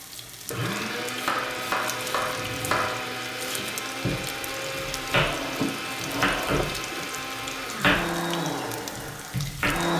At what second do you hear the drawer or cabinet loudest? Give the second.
6 s.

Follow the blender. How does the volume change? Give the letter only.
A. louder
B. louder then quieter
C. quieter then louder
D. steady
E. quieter
D.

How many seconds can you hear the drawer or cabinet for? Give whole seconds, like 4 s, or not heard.
3 s.